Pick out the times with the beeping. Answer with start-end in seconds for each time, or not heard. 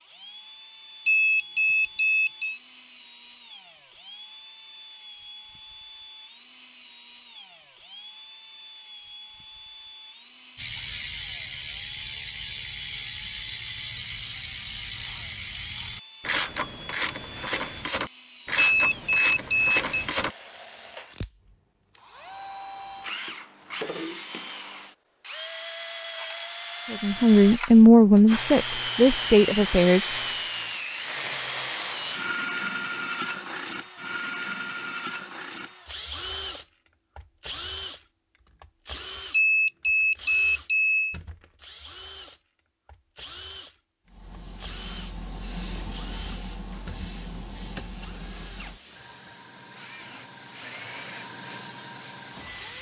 1.1-2.6, 18.7-20.1, 39.3-41.1.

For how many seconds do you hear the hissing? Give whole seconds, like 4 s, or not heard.
9 s.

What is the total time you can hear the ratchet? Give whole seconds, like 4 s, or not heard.
10 s.